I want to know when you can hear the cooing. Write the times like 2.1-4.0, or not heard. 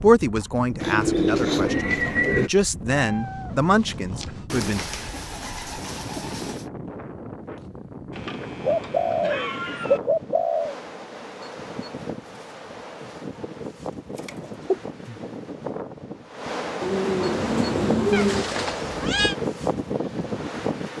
0.8-2.5, 4.5-6.7, 8.6-10.8, 14.2-15.2, 16.8-18.4.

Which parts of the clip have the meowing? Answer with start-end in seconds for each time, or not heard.
2.9-4.5, 8.1-10.0, 18.1-19.4.